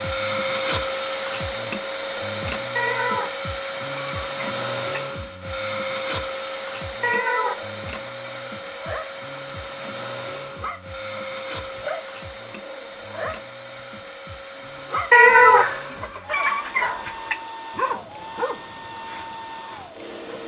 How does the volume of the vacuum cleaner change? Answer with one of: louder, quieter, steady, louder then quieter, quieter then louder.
quieter.